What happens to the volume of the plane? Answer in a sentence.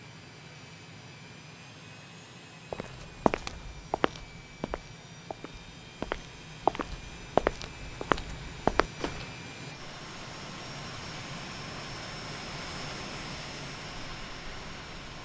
The loudness of the plane goes up.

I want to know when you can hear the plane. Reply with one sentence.
You can hear the plane from 0.0 to 15.1 s.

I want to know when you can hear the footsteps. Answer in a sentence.
The footsteps can be heard from 2.7 to 9.3 s.